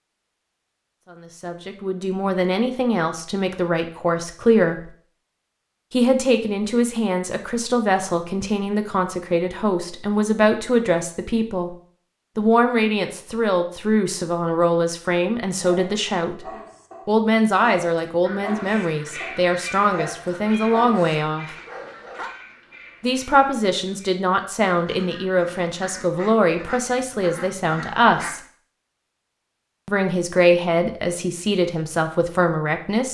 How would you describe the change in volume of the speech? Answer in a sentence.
The loudness of the speech stays about the same.